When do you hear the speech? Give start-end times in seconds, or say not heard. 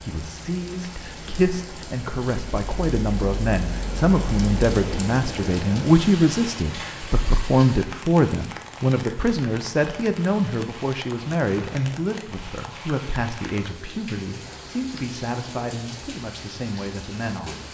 0.0-17.6.